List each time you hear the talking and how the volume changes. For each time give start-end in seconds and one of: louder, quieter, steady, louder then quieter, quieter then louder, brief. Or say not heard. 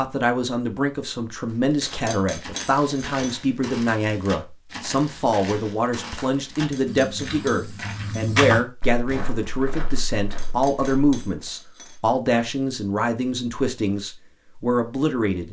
0.0-15.4 steady.